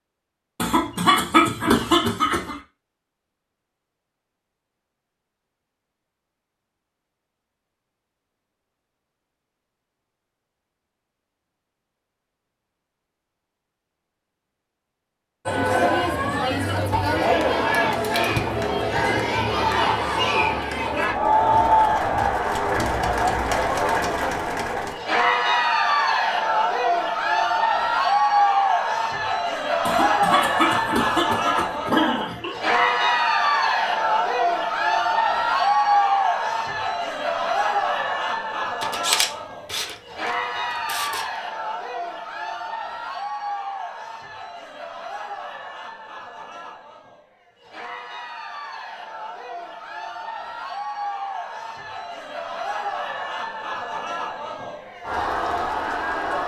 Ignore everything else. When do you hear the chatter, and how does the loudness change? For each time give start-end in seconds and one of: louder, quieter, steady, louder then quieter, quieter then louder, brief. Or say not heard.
15.4-56.4 quieter.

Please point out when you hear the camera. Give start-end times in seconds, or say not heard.
38.8-41.2.